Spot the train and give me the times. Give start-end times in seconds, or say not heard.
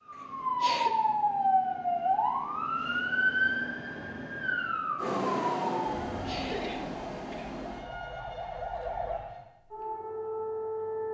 5.0-9.4.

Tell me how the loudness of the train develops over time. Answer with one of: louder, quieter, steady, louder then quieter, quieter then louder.
quieter.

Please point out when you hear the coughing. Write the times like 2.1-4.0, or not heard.
0.1-0.9, 6.2-7.6.